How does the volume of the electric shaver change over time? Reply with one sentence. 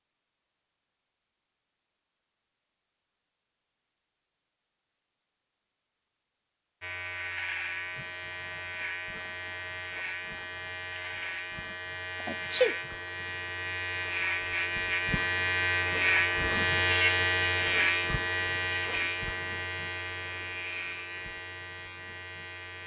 The loudness of the electric shaver goes up, then down.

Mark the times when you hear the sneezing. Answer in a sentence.
The sneezing can be heard from 12.2 to 12.8 s.